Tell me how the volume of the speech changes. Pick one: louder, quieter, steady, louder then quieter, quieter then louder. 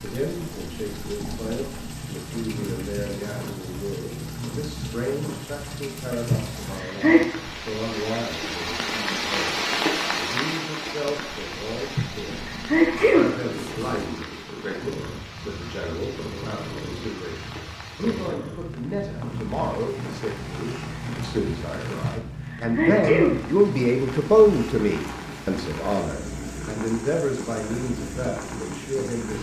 louder.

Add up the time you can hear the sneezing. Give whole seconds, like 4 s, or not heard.
4 s.